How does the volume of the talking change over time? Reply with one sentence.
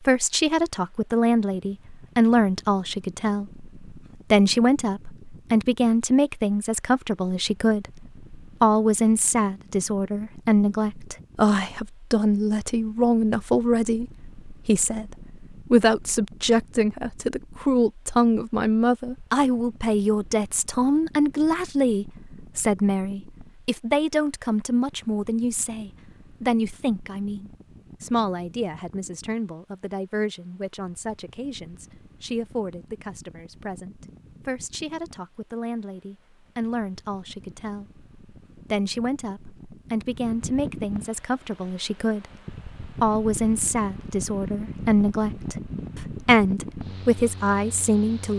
The volume of the talking goes down, then up.